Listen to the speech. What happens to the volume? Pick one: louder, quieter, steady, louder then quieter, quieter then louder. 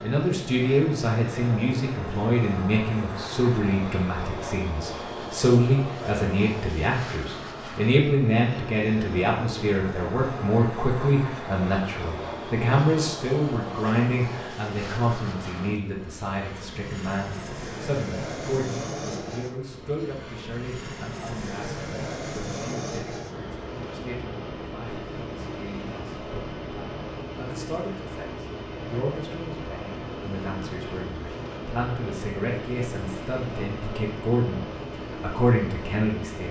quieter then louder.